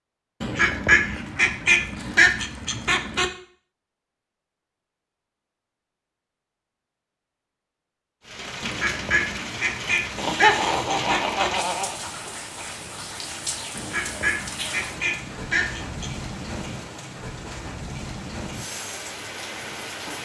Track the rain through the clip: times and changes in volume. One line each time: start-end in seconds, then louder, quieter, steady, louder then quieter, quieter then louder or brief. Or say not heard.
8.2-20.2 steady.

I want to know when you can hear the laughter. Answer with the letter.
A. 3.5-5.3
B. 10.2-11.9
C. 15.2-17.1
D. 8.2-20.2
B.